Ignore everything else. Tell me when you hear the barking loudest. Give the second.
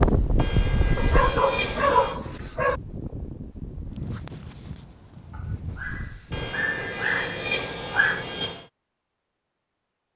2 s.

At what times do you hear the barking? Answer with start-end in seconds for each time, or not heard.
0.9-2.8, 5.8-8.2.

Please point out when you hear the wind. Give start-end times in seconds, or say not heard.
0.0-6.5.